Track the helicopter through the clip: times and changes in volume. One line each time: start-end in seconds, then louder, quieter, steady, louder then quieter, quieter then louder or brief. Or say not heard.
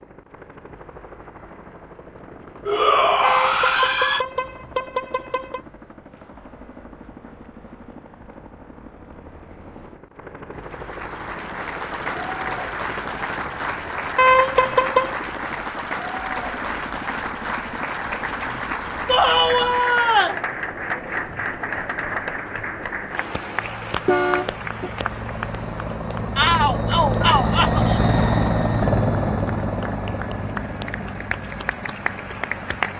0.0-32.9 louder.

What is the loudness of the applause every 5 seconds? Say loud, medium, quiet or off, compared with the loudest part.
off, off, loud, loud, loud, medium, loud.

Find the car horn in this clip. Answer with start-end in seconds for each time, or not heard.
3.2-5.6, 14.2-15.2, 24.1-24.9.